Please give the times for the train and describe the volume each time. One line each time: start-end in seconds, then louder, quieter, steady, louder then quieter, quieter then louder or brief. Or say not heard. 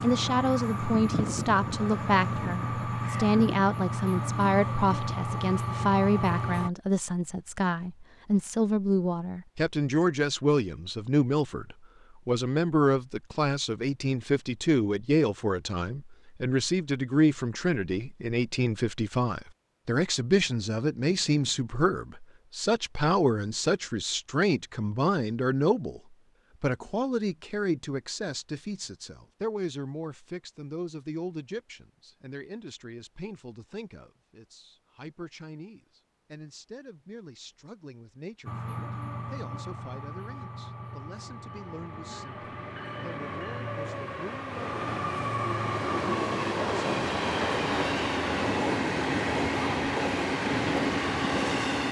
0.0-6.7 steady
38.5-51.8 louder.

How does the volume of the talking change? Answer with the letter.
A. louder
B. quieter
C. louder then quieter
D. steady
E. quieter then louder
B.